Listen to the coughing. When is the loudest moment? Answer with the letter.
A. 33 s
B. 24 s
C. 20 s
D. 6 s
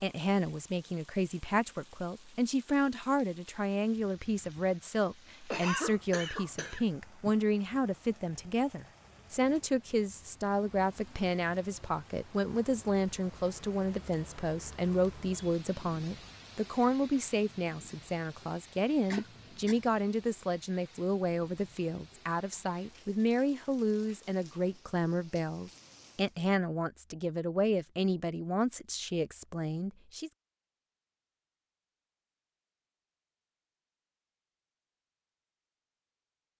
D.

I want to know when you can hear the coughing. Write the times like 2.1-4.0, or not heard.
5.5-7.3, 19.1-19.8.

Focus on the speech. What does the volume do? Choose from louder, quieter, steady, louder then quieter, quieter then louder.
steady.